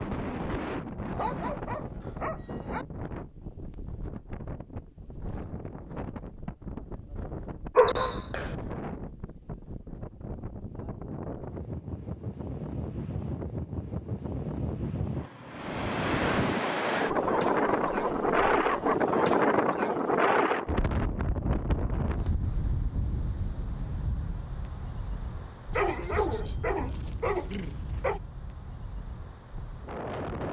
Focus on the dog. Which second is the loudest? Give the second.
8 s.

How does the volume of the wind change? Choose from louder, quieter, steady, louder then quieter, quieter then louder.
louder then quieter.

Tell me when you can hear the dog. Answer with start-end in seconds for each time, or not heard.
1.1-2.9, 7.8-8.6, 17.1-18.9, 25.7-28.2.